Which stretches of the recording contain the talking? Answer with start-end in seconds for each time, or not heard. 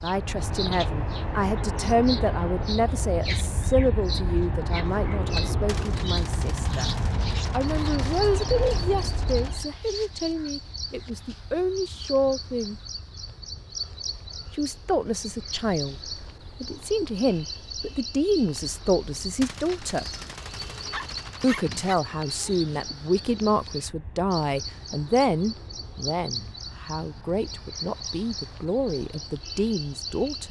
0.0-6.9, 7.5-12.8, 14.6-15.9, 16.6-20.1, 21.4-30.4.